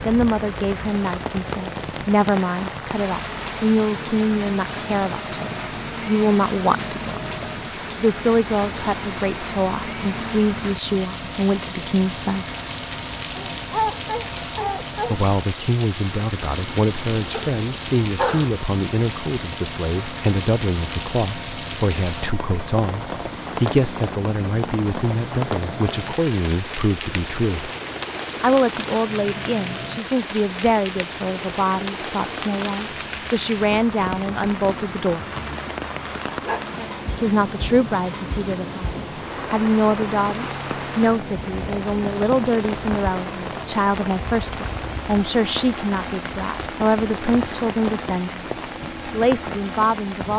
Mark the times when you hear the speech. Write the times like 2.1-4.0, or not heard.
0.1-12.4, 15.1-27.7, 28.4-35.2, 37.1-48.5, 49.1-50.3.